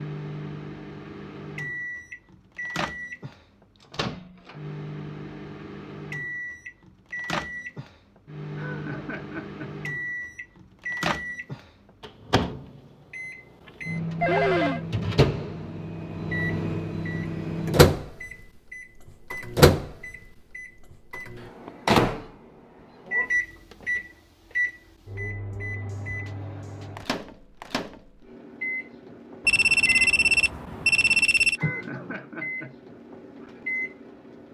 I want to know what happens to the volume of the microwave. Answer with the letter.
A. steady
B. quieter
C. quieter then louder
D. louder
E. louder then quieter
E.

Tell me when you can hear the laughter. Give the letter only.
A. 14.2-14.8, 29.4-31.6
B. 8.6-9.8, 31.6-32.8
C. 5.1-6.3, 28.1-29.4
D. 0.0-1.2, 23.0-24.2
B.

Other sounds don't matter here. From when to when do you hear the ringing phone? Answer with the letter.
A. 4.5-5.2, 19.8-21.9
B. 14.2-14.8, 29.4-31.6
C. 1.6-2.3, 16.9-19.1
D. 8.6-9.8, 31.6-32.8
B.